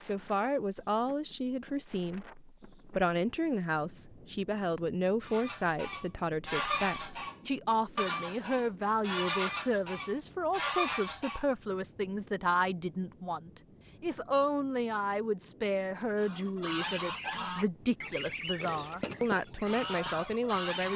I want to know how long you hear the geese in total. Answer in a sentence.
You can hear the geese for 11 seconds altogether.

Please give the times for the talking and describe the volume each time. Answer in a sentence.
The talking can be heard from 0.0 to 20.9 s, at a steady volume.